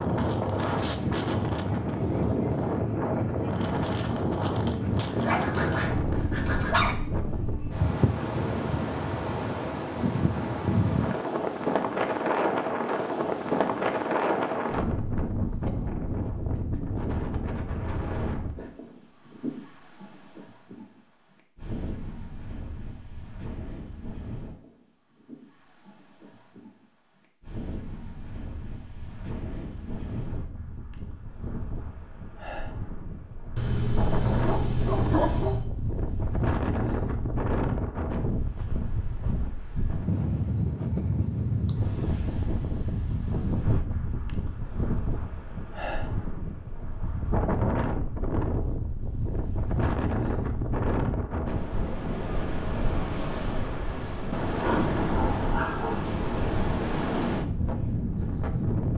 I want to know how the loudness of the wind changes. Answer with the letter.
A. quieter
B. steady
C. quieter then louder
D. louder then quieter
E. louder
C.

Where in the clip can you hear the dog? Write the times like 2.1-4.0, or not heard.
5.1-7.0, 33.5-35.6, 54.6-56.1.